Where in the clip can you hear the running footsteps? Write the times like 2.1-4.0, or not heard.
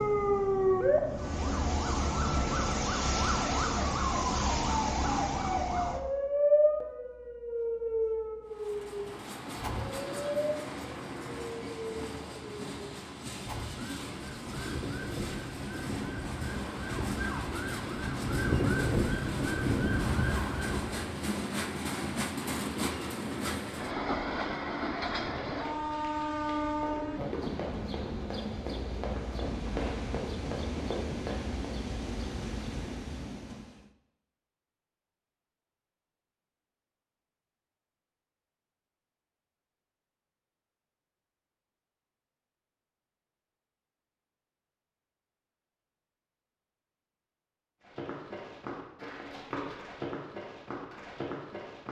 25.4-31.8, 47.8-51.8.